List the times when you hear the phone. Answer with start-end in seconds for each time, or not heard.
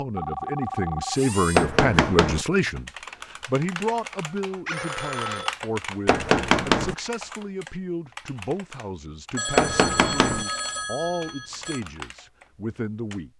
0.1-1.7, 4.7-5.5, 9.3-11.8.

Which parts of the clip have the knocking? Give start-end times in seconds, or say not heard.
1.6-2.5, 6.0-7.0, 9.6-10.4.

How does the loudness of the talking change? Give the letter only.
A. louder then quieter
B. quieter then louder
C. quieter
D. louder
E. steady
C.